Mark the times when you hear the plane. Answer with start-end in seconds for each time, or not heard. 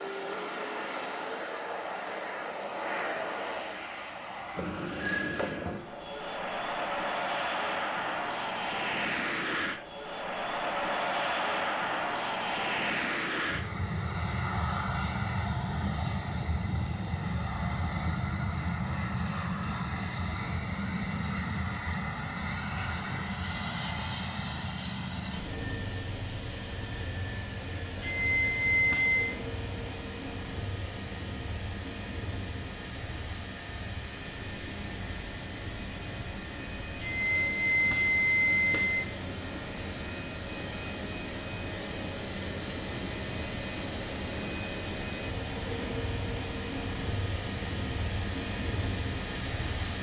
0.0-49.9.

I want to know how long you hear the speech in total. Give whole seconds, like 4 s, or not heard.
not heard.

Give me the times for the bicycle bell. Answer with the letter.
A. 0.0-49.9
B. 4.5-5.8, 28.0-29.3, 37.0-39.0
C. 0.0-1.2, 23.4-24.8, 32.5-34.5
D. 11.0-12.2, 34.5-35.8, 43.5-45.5
B.